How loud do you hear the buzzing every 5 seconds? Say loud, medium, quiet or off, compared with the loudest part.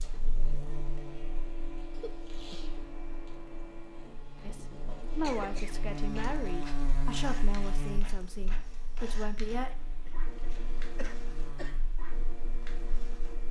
medium, loud, quiet.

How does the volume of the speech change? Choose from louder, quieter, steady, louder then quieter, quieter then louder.
quieter.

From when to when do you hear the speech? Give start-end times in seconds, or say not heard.
4.4-9.8.